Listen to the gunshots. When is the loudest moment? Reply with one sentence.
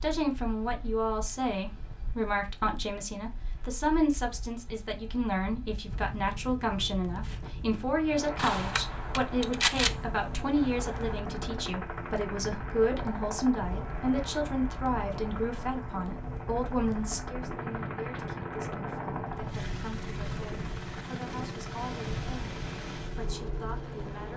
The loudest moment of the gunshots is at 10 seconds.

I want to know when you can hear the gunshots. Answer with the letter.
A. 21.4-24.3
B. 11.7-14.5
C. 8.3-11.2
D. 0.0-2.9
C.